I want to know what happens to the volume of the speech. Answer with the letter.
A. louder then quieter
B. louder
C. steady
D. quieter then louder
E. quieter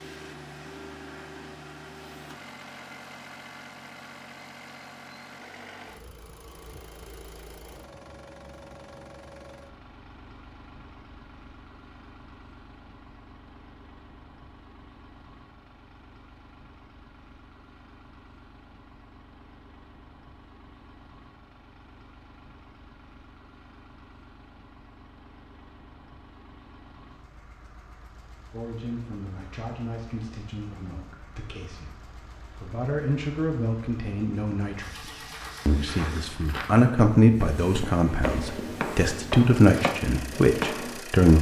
B.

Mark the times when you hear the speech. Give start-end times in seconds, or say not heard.
28.5-41.3.